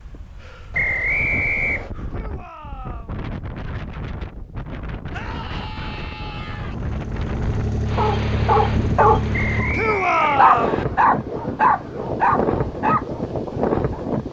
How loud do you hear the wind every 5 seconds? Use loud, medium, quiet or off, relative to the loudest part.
medium, medium, loud.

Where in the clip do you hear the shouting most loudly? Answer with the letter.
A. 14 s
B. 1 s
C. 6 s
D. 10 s
D.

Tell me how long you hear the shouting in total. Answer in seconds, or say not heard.
4 s.